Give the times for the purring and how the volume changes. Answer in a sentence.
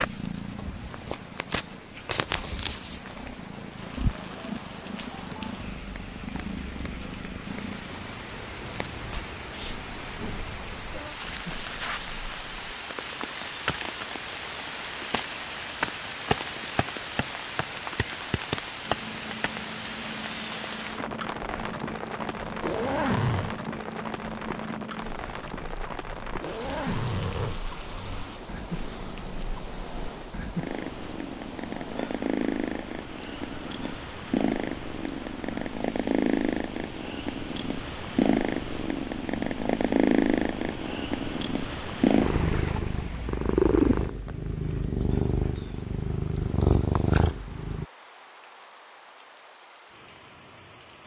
The purring can be heard from 0.0 to 12.8 s, getting quieter; and from 18.9 to 47.9 s, getting louder.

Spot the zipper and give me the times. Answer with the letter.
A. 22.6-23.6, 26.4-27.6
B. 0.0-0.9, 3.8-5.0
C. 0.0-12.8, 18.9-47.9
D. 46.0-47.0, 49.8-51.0
A.